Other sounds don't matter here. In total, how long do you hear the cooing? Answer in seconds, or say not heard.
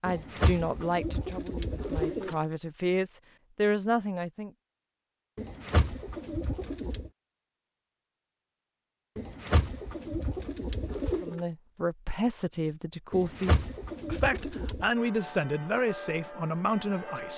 8 s.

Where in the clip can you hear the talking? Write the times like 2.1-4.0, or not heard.
0.0-4.5, 11.2-17.3.